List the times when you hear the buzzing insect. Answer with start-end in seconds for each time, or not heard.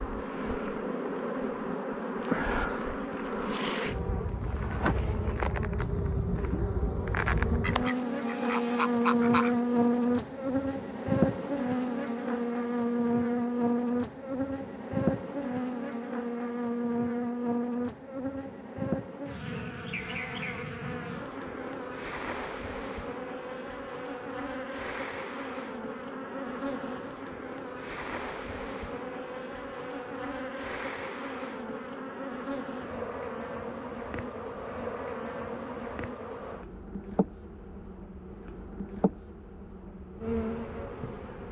0.0-41.4.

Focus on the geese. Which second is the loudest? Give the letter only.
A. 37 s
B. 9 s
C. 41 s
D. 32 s
B.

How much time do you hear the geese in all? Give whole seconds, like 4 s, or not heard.
2 s.